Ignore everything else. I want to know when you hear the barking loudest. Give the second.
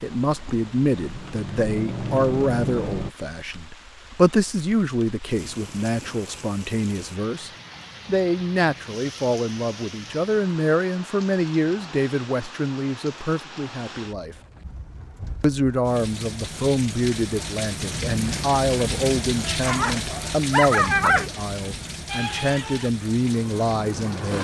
21 s.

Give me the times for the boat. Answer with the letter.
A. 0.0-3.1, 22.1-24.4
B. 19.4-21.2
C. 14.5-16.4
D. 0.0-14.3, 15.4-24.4
A.